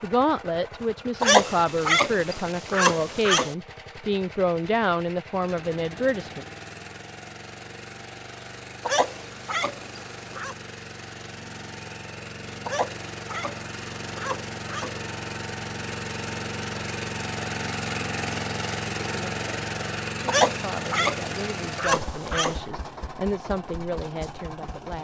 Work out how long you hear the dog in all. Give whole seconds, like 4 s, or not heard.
9 s.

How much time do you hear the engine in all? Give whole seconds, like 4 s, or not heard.
25 s.